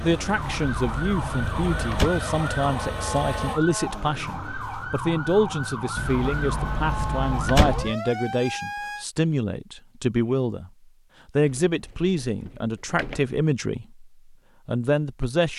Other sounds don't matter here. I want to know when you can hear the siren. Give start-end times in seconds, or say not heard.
0.0-9.1.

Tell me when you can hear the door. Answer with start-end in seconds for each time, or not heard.
0.3-2.1, 6.0-8.0, 11.4-13.4.